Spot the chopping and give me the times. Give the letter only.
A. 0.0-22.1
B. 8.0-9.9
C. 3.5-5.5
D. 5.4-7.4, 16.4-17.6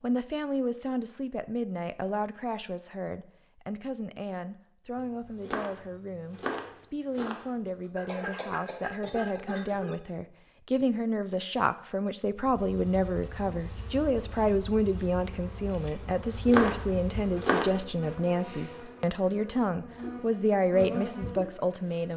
D.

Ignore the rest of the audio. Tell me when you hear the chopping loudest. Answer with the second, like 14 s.
17 s.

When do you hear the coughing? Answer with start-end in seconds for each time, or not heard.
8.0-9.9.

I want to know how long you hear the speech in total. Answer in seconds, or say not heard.
22 s.